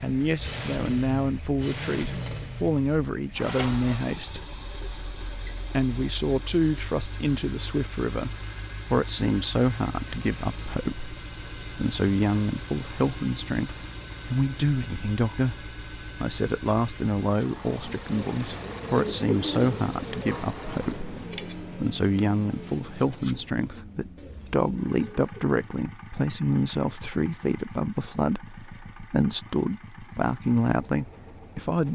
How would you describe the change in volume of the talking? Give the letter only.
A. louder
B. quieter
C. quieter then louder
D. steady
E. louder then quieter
D.